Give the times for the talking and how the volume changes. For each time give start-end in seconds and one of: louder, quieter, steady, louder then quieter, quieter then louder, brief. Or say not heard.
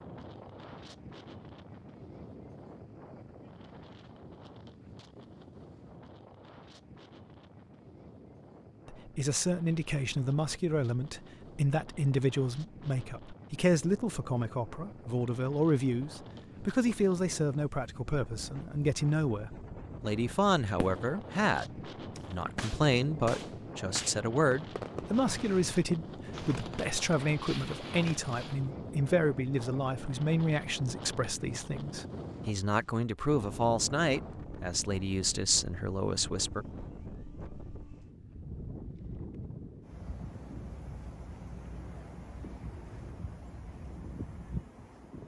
8.8-36.6 steady.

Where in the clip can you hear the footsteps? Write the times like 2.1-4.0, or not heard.
not heard.